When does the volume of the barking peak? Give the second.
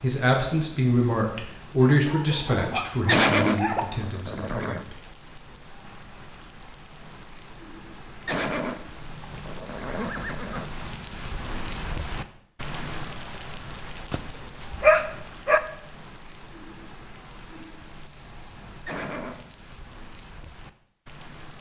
15 s.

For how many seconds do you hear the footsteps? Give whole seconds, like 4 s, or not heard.
not heard.